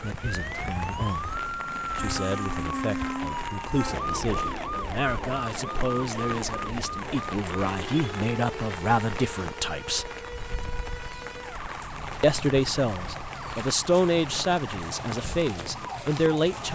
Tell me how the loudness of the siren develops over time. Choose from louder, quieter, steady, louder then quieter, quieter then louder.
quieter.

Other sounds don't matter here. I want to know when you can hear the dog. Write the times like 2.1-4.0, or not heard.
not heard.